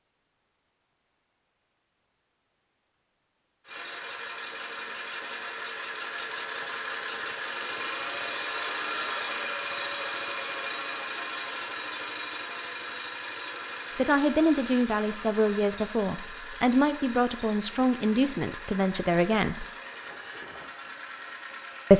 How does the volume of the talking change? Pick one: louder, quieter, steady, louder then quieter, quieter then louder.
steady.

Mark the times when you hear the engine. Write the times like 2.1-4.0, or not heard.
3.6-21.9.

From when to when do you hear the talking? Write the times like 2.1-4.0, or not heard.
13.9-19.6.